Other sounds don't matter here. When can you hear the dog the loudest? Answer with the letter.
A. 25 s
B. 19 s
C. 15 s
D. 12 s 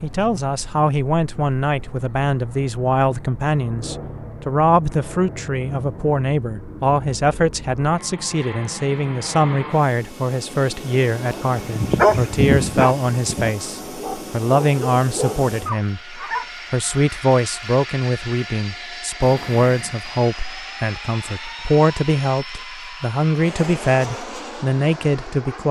D.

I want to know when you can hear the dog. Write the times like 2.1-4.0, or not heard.
11.4-16.5.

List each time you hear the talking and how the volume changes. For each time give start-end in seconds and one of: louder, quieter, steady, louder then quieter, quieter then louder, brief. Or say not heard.
0.0-25.6 steady.